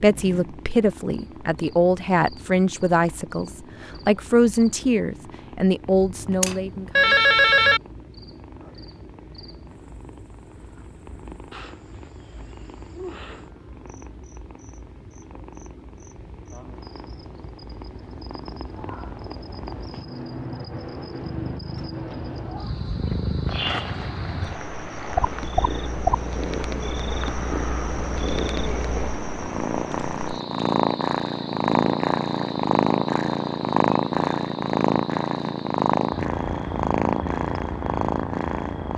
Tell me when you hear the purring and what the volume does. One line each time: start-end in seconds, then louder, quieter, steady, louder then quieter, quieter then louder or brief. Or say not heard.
0.0-38.9 louder.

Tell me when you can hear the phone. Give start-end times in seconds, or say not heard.
6.1-7.8.